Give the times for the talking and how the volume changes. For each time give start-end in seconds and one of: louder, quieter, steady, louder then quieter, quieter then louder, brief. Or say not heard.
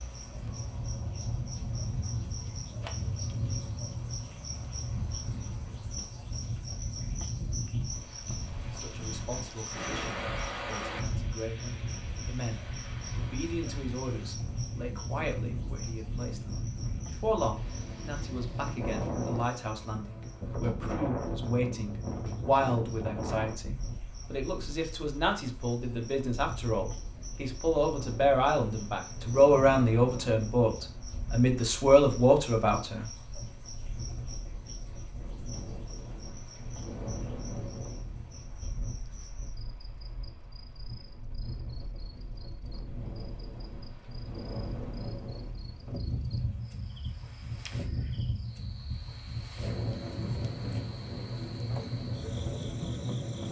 8.7-33.1 louder.